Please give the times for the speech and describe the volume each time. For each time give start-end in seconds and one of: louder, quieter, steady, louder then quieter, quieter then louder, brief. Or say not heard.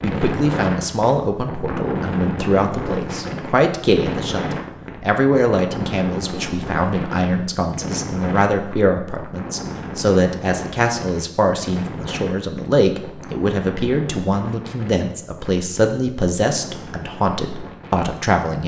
0.0-18.6 steady.